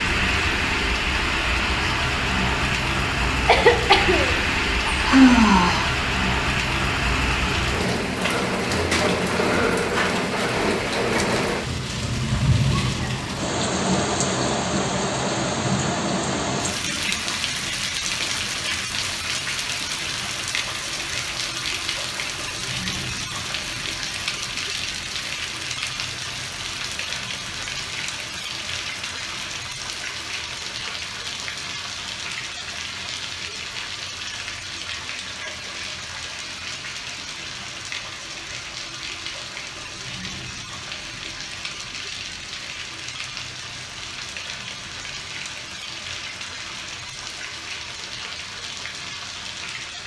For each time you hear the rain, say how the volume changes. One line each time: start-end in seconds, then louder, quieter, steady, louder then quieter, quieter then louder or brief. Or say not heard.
0.0-50.0 quieter.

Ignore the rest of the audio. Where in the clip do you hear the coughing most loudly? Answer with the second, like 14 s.
4 s.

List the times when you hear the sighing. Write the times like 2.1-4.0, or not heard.
5.0-5.8.